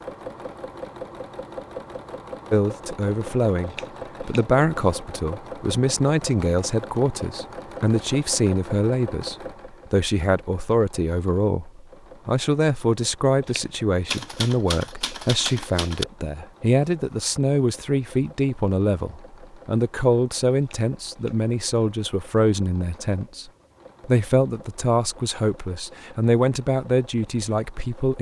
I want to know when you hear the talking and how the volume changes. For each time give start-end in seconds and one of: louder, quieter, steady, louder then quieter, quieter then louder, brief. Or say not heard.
2.5-28.1 steady.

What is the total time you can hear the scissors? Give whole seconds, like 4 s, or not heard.
2 s.